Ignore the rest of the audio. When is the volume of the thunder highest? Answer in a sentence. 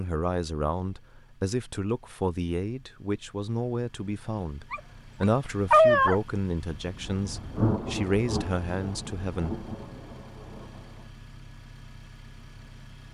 The volume of the thunder peaks at 8 seconds.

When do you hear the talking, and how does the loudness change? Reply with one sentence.
The talking can be heard from 0.0 to 9.6 s, at a steady volume.